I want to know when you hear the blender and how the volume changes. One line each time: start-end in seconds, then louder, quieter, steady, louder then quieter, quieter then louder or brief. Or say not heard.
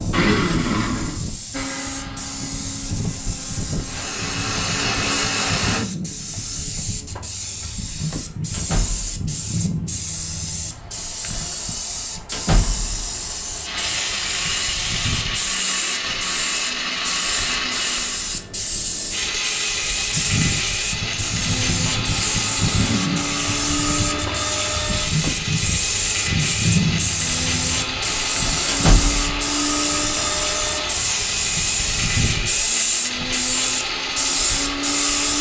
0.0-5.8 quieter then louder
13.7-35.3 steady.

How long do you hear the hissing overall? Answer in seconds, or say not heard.
35 s.